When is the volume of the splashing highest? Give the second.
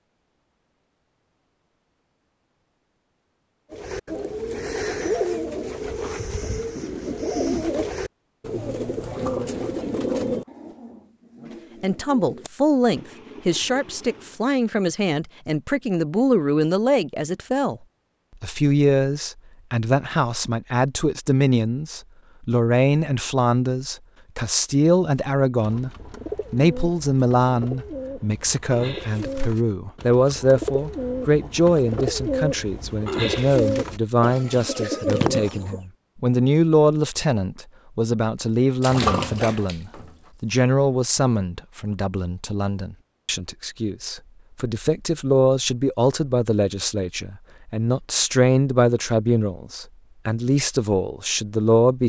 39 s.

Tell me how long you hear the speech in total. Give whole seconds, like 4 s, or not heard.
39 s.